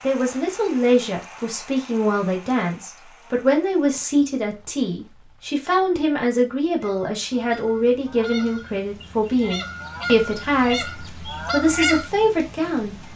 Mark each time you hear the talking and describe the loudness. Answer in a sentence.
The talking can be heard from 0.0 to 13.1 s, at a steady volume.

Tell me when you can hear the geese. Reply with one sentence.
The geese can be heard from 6.8 to 12.1 s.